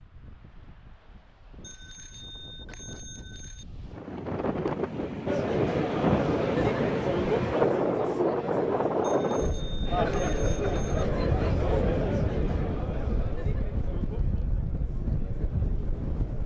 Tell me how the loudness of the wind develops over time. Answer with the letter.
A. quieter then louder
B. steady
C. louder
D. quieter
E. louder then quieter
E.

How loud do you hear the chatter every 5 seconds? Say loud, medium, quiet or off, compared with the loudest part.
off, loud, loud, quiet.